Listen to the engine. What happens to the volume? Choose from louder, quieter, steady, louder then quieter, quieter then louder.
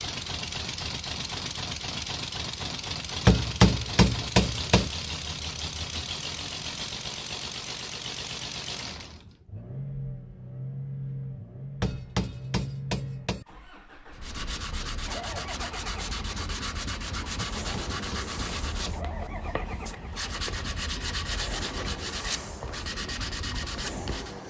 quieter.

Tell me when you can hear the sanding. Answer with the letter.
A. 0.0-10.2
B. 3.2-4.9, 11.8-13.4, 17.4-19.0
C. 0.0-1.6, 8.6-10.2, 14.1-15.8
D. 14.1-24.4
D.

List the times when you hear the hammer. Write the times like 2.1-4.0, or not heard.
3.2-4.9, 11.8-13.4, 17.4-19.0.